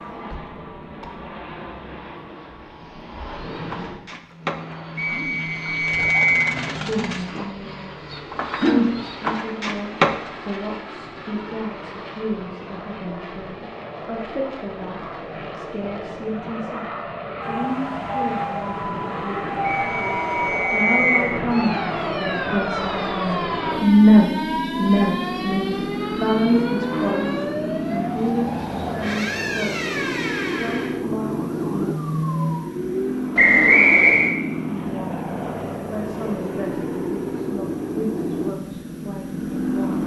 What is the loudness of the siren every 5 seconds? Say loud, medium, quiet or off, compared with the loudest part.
off, off, off, loud, loud, loud, loud, off.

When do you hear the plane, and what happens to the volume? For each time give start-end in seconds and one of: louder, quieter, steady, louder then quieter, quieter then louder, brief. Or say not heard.
0.0-40.0 louder.